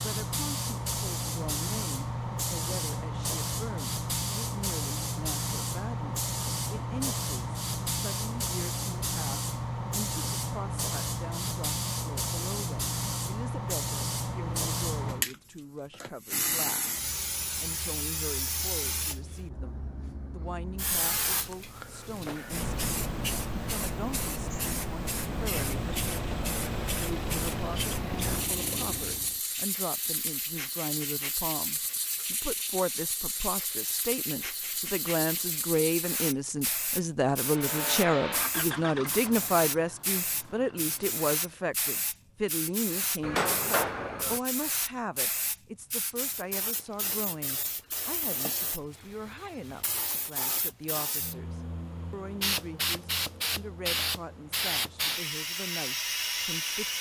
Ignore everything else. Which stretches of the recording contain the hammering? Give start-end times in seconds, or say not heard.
43.2-44.4.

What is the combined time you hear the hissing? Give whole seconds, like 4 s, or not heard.
57 s.